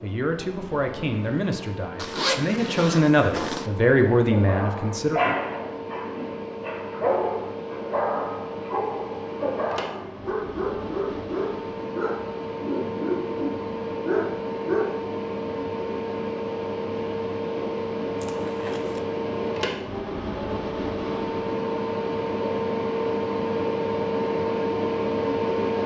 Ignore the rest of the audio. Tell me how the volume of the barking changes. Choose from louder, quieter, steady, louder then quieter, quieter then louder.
steady.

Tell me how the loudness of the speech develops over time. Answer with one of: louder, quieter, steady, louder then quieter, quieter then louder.
louder.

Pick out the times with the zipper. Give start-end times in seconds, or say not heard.
1.9-3.7, 18.1-19.0.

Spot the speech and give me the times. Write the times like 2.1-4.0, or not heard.
0.0-5.2.